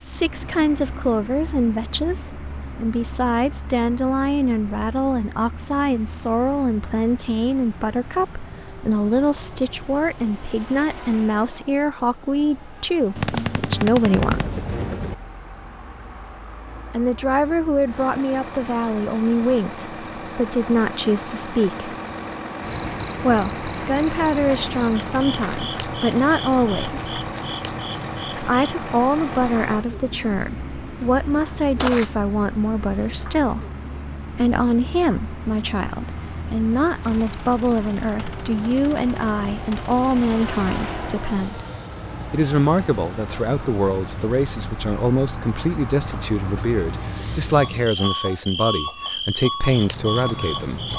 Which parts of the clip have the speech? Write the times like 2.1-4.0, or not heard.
0.0-14.7, 16.9-21.9, 23.2-27.2, 28.4-33.6, 34.3-41.6, 42.3-50.9.